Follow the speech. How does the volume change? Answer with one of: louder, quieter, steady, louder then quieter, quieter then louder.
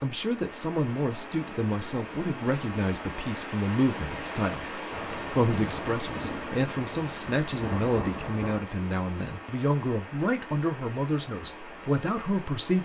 steady.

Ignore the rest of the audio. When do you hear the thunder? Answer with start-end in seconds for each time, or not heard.
4.9-8.7.